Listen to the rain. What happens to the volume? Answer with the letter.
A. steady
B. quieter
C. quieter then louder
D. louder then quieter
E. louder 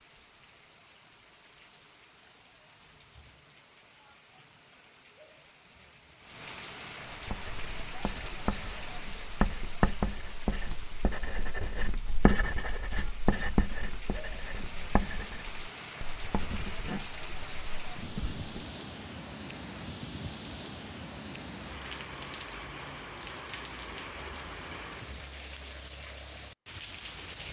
E.